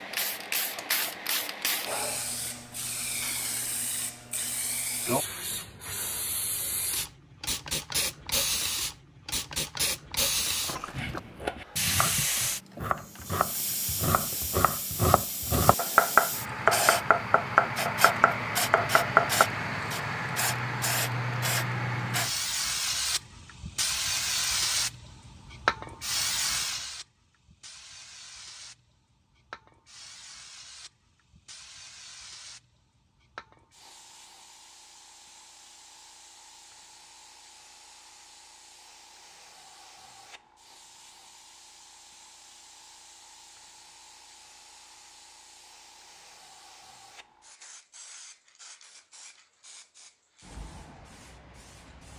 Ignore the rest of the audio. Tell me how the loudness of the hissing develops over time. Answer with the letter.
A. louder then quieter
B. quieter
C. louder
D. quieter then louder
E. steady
B.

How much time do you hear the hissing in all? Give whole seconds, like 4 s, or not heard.
52 s.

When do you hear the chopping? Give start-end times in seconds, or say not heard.
10.9-19.4.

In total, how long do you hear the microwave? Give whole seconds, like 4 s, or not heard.
not heard.